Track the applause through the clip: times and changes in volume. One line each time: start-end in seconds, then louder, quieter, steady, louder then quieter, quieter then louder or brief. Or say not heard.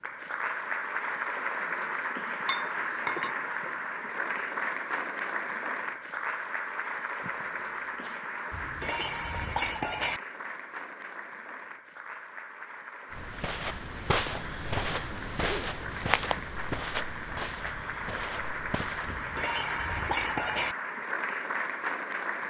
0.0-22.4 quieter then louder.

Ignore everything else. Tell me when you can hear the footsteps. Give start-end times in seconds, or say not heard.
13.1-19.2.